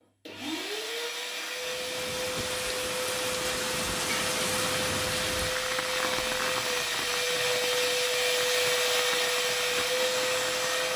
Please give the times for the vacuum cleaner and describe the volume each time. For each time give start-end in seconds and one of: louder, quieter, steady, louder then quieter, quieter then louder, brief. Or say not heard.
0.0-10.9 louder.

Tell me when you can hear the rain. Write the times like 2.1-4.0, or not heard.
1.6-10.9.